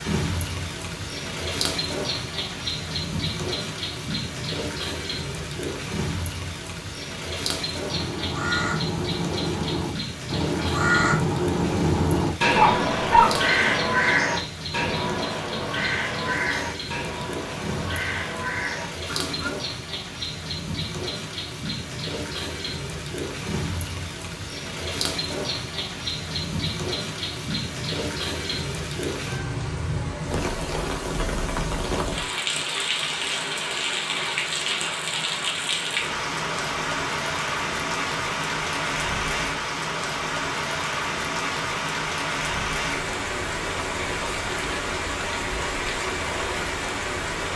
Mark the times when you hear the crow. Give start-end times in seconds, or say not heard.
7.8-19.5.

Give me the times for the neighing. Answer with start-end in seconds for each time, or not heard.
not heard.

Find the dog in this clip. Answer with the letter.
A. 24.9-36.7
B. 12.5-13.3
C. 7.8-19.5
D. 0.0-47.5
B.